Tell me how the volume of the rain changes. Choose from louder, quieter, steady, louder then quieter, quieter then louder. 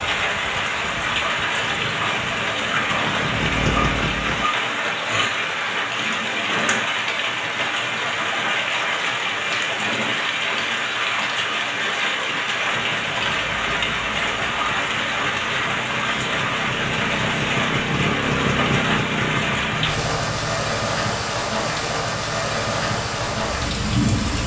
steady.